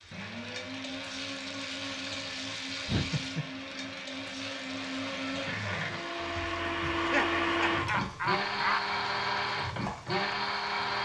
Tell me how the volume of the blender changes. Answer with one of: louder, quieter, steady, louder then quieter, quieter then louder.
louder.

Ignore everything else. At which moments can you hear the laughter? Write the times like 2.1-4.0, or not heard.
2.9-3.5, 6.9-8.8.